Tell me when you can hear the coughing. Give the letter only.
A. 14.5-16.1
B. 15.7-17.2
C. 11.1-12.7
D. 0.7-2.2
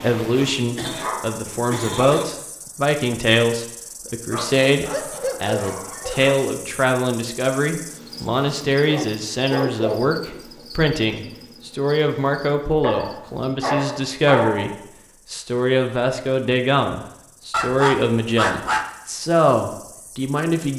D.